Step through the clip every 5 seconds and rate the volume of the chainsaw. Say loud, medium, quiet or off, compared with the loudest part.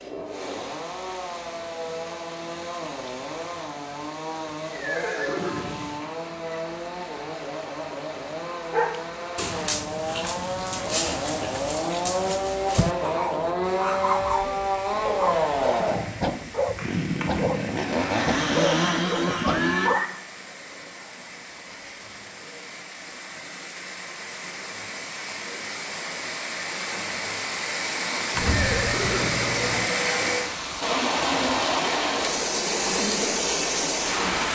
medium, medium, loud, loud, off, off, off.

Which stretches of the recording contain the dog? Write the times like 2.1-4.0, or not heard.
8.7-20.0.